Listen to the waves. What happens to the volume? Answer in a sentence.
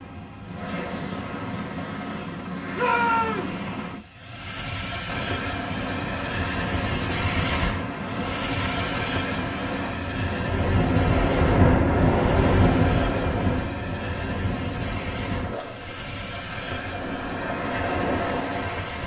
The volume of the waves goes up, then down.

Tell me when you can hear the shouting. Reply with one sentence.
The shouting can be heard from 2.7 to 3.5 s.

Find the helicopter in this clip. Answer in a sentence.
You can hear the helicopter from 0.0 to 19.0 s.